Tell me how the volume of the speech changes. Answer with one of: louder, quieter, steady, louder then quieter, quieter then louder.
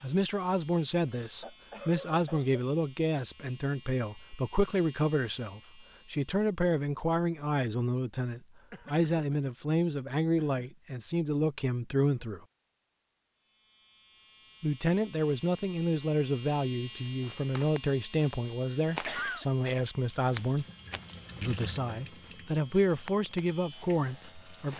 steady.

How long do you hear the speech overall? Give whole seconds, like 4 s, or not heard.
22 s.